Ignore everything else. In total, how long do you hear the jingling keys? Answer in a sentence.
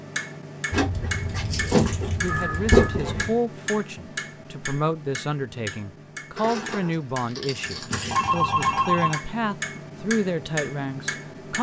You can hear the jingling keys for 5 seconds altogether.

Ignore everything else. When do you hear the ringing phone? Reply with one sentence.
You can hear the ringing phone from 2.2 to 3.0 s and from 8.1 to 9.2 s.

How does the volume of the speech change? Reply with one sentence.
The volume of the speech stays about the same.